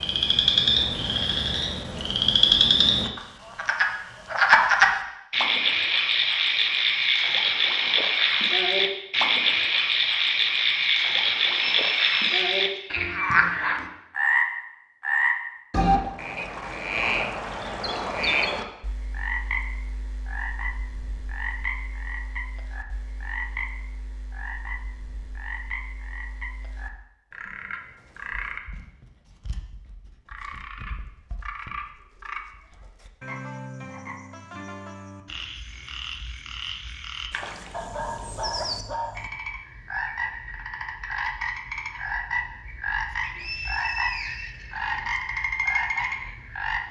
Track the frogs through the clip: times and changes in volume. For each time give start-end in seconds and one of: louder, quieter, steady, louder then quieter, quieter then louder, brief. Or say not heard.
0.0-46.8 quieter then louder.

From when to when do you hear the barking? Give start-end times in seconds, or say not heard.
37.7-39.3.